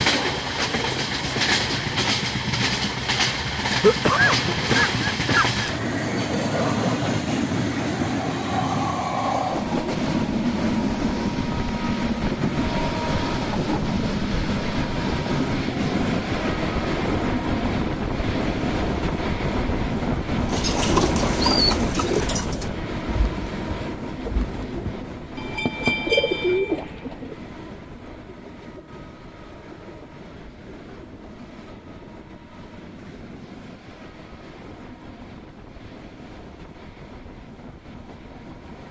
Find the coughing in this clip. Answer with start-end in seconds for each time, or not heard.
3.8-5.7.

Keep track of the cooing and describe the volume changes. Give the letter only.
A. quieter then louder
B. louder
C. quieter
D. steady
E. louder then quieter
A.